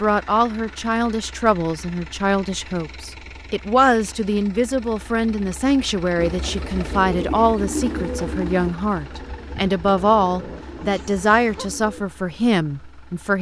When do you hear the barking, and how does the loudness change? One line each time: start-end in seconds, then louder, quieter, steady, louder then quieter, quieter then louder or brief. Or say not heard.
not heard.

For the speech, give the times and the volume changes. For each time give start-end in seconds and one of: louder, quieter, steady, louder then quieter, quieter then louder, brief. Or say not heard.
0.0-13.3 steady.